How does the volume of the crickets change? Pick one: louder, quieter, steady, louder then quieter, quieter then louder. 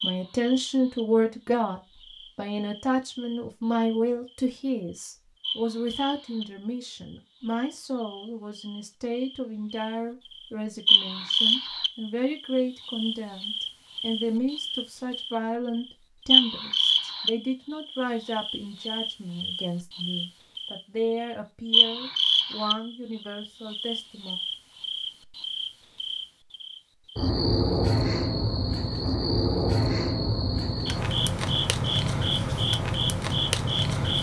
louder.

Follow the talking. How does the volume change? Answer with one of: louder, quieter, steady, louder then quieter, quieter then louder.
quieter.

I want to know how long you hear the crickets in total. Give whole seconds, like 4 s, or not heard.
34 s.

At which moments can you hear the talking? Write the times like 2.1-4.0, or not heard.
0.0-24.4.